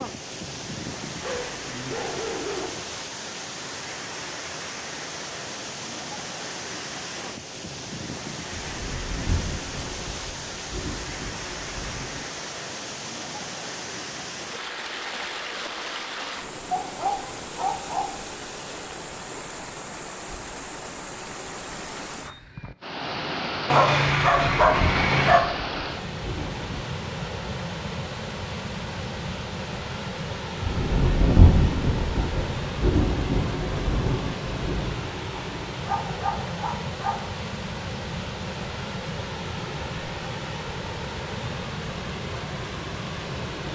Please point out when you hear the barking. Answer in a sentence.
The barking can be heard from 1.2 to 2.7 s, from 16.7 to 18.1 s, from 23.7 to 25.4 s and from 35.4 to 37.2 s.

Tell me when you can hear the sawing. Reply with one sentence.
You can't hear the sawing here.